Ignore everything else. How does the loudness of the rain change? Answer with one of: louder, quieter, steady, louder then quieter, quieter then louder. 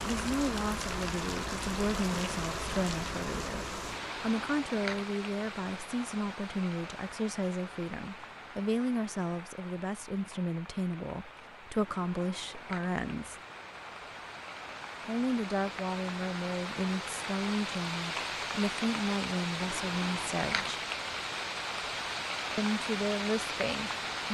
quieter then louder.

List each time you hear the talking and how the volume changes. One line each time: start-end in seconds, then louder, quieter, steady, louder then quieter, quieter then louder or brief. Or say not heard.
0.1-13.3 steady
15.1-20.8 steady
22.6-24.2 brief.